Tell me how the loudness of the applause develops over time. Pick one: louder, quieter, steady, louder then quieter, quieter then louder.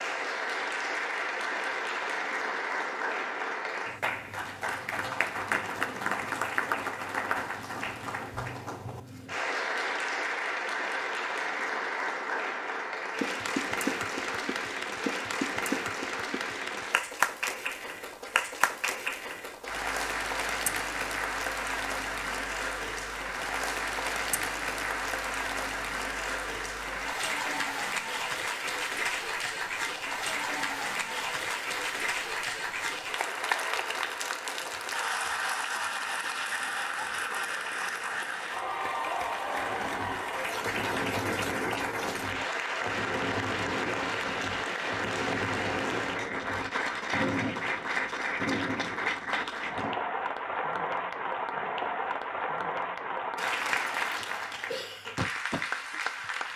steady.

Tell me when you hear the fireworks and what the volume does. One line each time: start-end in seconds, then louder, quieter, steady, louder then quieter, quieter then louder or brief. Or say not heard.
39.5-50.0 steady.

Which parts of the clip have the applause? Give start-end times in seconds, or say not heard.
0.0-56.5.